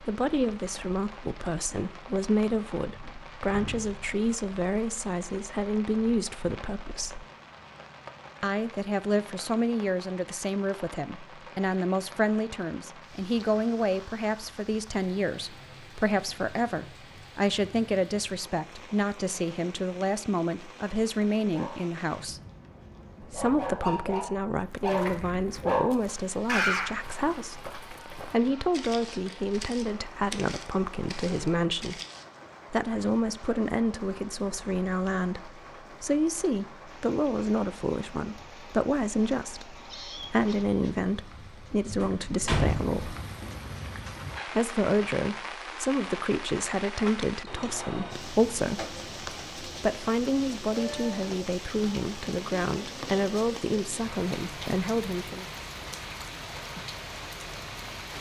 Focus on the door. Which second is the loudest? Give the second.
43 s.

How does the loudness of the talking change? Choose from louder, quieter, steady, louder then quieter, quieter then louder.
steady.